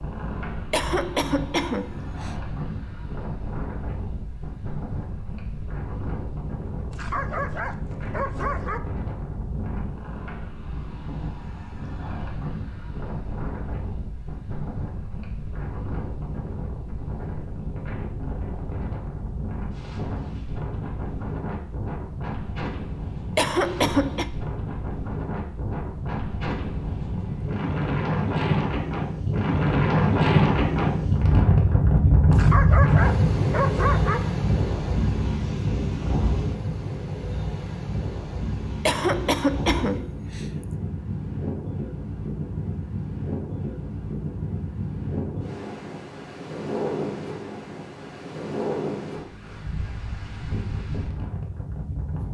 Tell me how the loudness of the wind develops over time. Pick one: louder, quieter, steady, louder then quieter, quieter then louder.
louder then quieter.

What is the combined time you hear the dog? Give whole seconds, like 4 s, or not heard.
4 s.